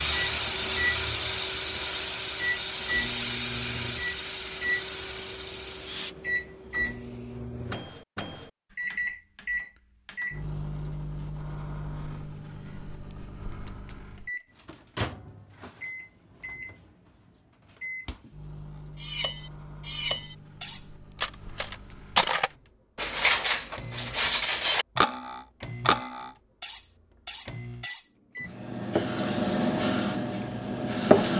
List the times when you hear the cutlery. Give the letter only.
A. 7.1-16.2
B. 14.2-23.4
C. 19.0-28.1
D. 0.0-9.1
C.